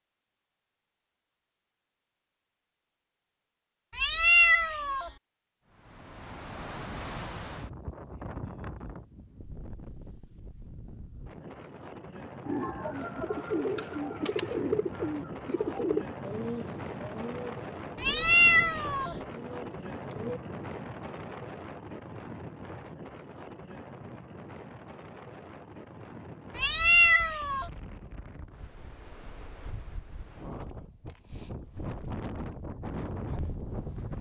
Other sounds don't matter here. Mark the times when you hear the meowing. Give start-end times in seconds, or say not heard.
4.0-5.1, 18.0-19.1, 26.6-27.6.